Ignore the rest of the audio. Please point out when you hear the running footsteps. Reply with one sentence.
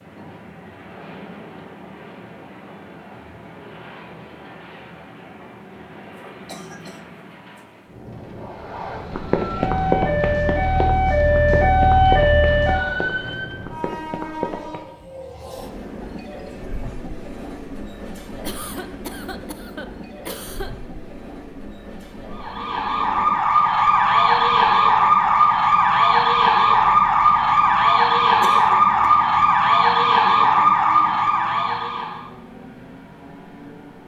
You can hear the running footsteps from 9.1 to 14.8 s.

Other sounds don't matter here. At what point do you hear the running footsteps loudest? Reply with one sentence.
The loudest moment of the running footsteps is at 10 seconds.